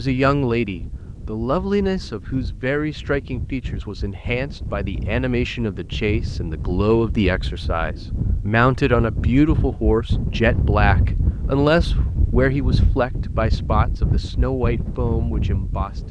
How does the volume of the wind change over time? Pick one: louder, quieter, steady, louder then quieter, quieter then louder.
louder.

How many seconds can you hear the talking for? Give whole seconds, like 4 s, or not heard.
16 s.